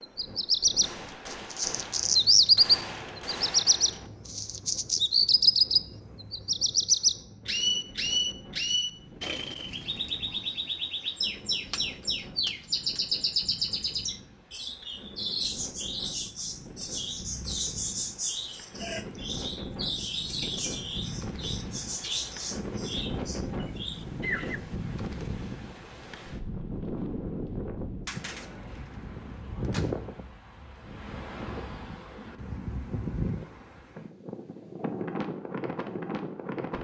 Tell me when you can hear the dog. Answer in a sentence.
You can't hear the dog here.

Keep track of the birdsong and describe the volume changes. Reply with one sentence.
The loudness of the birdsong goes down.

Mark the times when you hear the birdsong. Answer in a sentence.
The birdsong can be heard from 0.0 to 24.6 s.